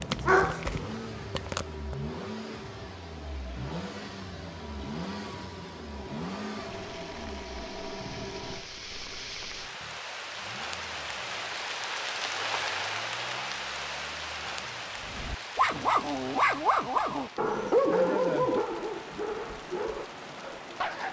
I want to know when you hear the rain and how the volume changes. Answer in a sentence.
You can hear the rain from 6.6 to 21.0 s, getting louder then quieter.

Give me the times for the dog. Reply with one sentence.
The dog can be heard from 0.0 to 1.9 s and from 15.1 to 21.0 s.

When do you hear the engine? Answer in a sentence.
The engine can be heard from 0.0 to 16.9 s.